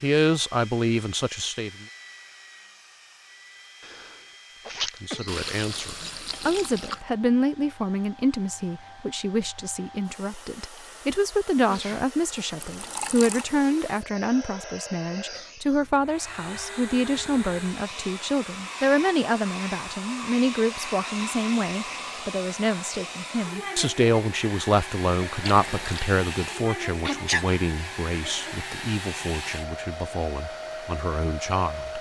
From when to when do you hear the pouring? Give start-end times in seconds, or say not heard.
5.2-7.0, 12.6-13.4, 25.4-26.1.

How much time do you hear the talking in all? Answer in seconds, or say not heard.
29 s.